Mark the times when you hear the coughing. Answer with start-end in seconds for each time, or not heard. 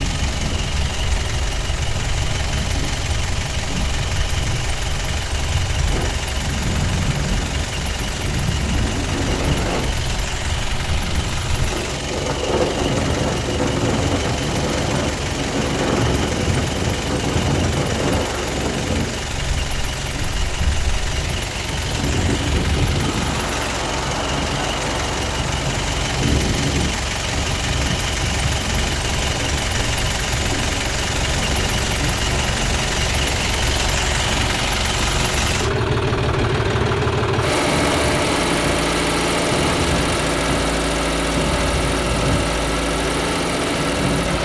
not heard.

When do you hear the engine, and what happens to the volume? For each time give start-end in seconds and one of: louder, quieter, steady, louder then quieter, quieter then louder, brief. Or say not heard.
0.0-44.4 louder.